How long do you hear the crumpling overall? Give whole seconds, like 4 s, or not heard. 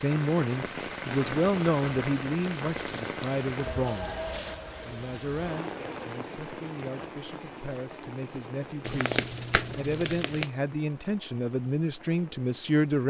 3 s.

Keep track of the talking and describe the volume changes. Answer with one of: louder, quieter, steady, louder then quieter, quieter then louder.
quieter then louder.